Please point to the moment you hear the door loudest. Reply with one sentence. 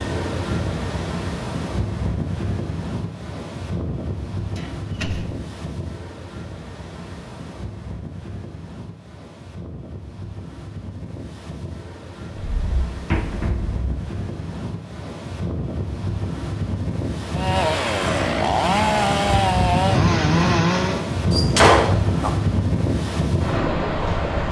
The volume of the door peaks at 22 seconds.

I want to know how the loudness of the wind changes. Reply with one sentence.
The volume of the wind goes down, then up.